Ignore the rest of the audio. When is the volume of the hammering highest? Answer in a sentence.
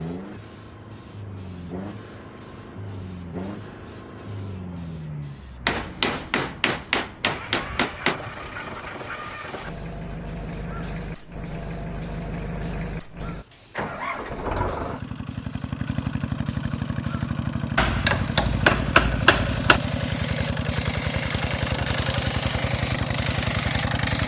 The volume of the hammering peaks at 19 seconds.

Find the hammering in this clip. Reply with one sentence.
You can hear the hammering from 5.7 to 8.2 s and from 17.8 to 19.8 s.